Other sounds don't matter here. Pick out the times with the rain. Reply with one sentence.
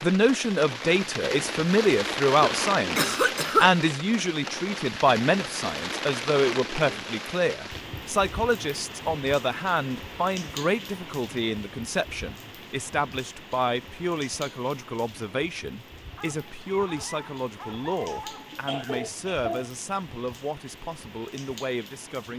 You can hear the rain from 0.0 to 22.3 s.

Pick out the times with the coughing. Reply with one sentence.
You can hear the coughing from 2.4 to 3.7 s and from 18.4 to 19.7 s.